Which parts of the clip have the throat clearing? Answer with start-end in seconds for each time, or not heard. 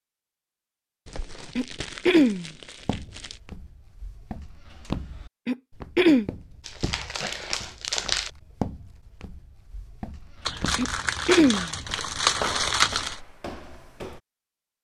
1.6-2.5, 5.5-6.2, 10.8-11.7.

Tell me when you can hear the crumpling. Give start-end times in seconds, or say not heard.
1.1-3.4, 6.7-8.3, 10.4-13.2.